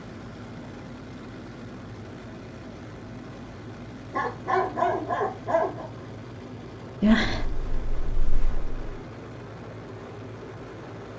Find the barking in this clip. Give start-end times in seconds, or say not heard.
4.1-5.8.